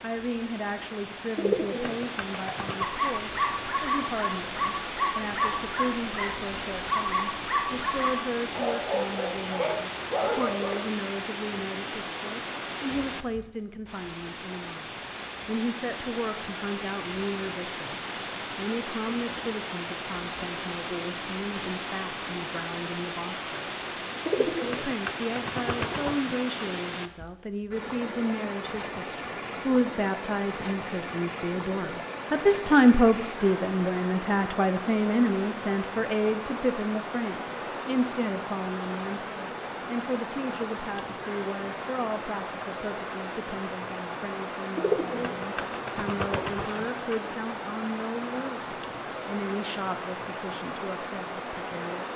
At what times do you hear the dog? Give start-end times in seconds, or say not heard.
2.8-10.8.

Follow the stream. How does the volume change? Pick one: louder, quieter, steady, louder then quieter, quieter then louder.
steady.